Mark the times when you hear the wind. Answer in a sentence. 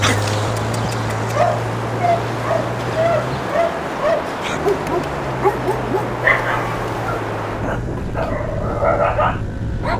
The wind can be heard from 0.0 to 9.9 s.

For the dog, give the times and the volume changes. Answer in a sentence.
You can hear the dog from 0.0 to 9.9 s, at a steady volume.